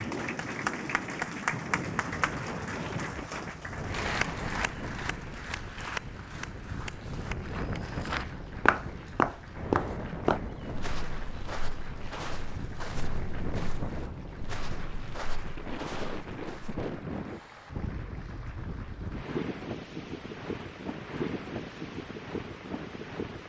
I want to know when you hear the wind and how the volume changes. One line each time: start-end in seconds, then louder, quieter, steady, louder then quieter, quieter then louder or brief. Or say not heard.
0.0-23.4 steady.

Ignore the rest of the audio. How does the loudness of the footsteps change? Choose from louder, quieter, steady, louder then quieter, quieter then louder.
quieter.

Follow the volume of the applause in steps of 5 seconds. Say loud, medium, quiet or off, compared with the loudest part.
loud, medium, quiet, quiet, quiet.